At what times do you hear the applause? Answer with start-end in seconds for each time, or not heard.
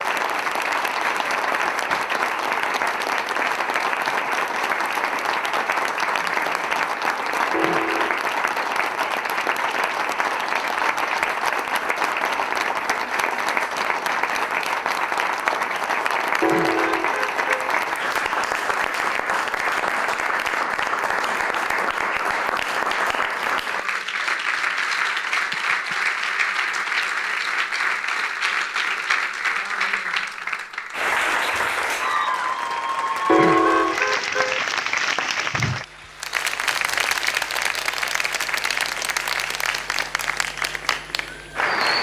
0.0-41.9.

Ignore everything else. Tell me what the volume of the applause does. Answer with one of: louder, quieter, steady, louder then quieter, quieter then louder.
steady.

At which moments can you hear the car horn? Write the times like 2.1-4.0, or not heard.
7.5-8.2, 16.4-17.8, 33.2-34.6.